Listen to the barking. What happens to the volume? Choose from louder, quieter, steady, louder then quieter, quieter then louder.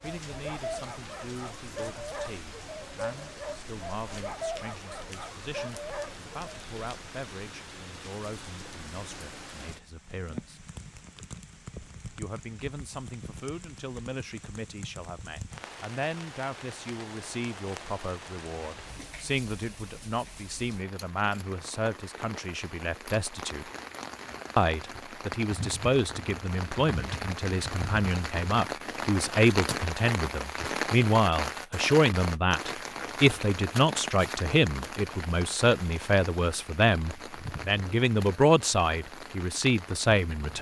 steady.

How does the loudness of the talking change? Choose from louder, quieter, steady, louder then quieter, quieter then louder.
louder.